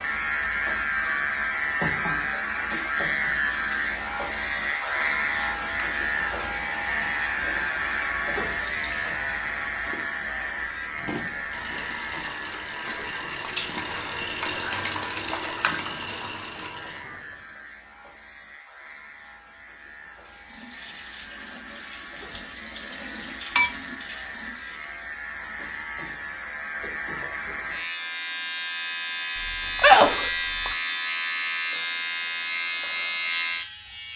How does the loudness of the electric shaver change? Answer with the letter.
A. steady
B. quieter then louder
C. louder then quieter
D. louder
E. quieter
B.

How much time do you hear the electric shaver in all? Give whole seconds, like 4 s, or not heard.
34 s.